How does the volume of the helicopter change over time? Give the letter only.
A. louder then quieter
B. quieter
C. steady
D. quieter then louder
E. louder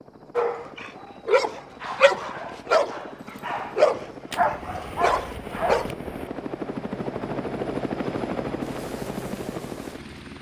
E.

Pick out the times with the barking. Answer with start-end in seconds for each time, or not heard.
0.3-6.0.